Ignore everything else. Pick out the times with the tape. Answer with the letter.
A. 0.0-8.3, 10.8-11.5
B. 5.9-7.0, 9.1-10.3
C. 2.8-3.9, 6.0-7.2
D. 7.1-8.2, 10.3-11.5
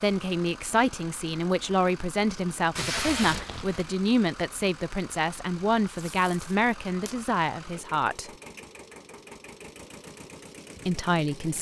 C.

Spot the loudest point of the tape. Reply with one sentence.
The volume of the tape peaks at 3 seconds.